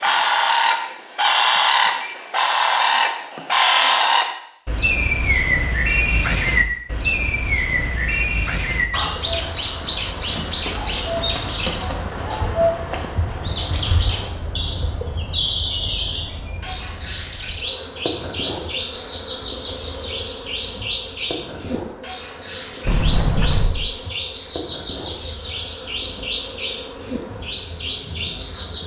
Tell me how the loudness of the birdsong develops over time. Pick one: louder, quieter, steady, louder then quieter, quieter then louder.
quieter.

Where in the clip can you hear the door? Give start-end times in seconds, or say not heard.
22.9-23.9.